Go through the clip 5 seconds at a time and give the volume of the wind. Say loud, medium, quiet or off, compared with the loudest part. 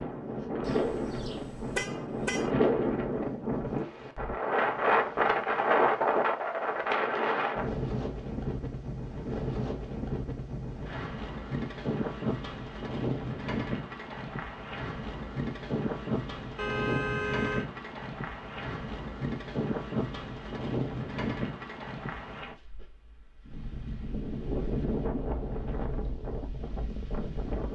loud, loud, medium, medium, medium, medium.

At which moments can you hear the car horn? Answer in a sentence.
You can hear the car horn from 0.6 to 2.5 s and from 16.6 to 17.6 s.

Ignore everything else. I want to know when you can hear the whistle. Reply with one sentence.
The whistle can't be heard in this clip.